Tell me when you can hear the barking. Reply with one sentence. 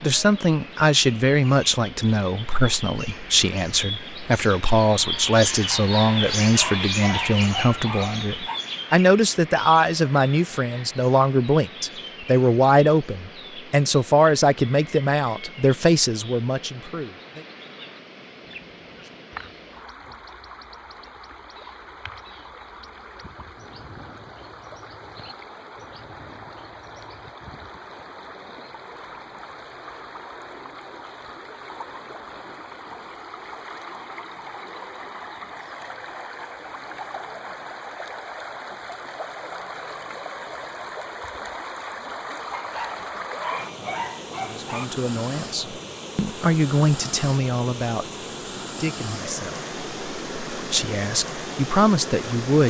The barking can be heard from 5.7 to 8.6 s and from 42.5 to 44.9 s.